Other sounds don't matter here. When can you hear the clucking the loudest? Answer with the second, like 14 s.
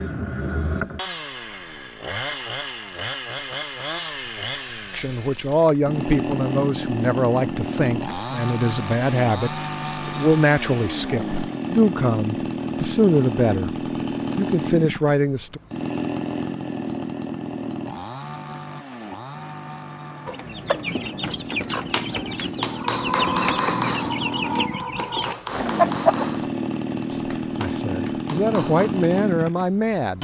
26 s.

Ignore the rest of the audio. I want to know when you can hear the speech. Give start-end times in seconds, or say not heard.
4.9-13.8, 14.3-15.6, 27.1-30.1.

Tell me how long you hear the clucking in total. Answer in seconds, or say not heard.
6 s.